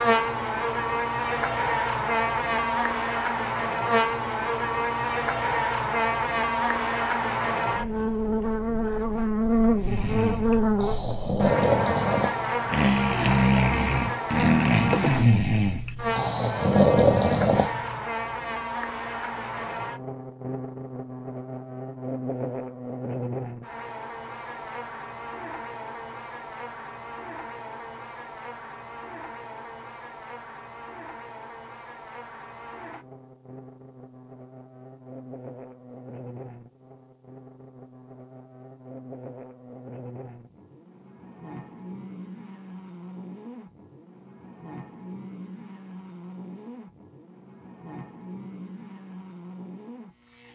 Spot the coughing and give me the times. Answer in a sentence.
The coughing can't be heard in this clip.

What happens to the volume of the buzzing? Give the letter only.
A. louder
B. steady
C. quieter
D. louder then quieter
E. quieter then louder
C.